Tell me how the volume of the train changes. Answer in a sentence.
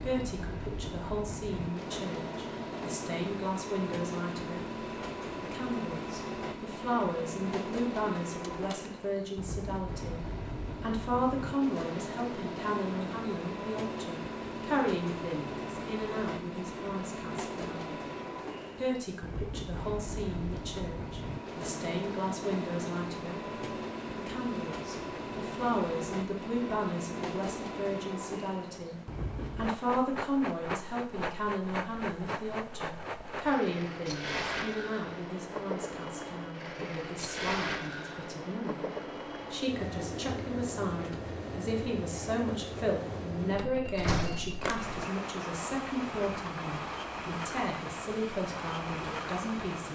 The loudness of the train stays about the same.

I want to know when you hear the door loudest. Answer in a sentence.
The volume of the door peaks at 44 seconds.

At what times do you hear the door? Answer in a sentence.
The door can be heard from 8.3 to 8.9 s and from 43.5 to 45.0 s.